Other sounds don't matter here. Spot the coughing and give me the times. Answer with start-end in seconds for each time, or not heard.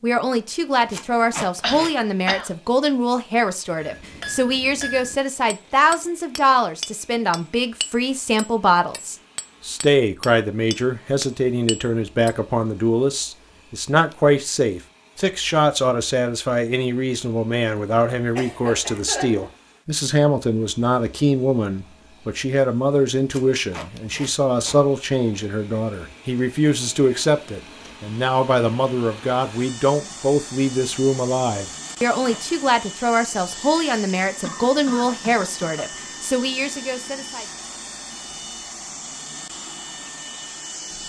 1.6-2.5, 18.4-19.5, 34.4-35.9.